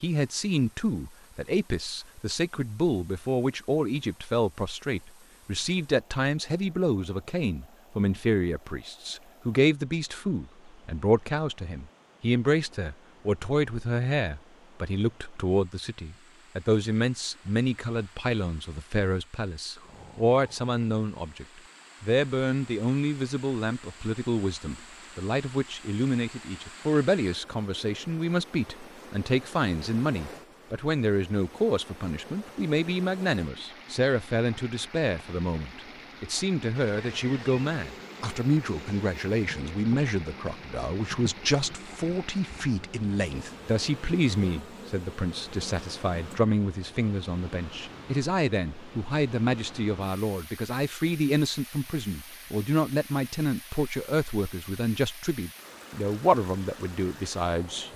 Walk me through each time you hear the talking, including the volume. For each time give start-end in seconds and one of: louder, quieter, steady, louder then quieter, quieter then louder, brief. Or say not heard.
0.0-57.9 steady.